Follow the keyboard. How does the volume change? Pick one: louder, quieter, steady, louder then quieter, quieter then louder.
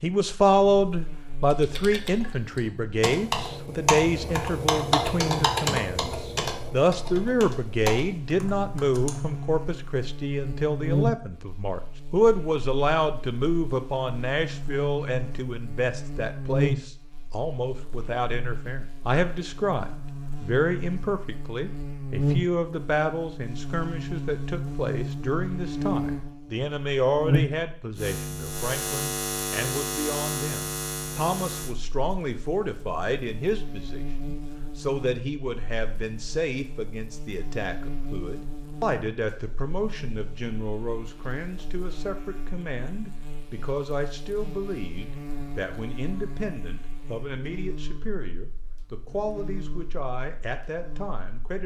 louder then quieter.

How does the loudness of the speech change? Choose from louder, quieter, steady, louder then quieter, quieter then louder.
quieter.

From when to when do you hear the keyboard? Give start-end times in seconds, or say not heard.
1.4-9.4.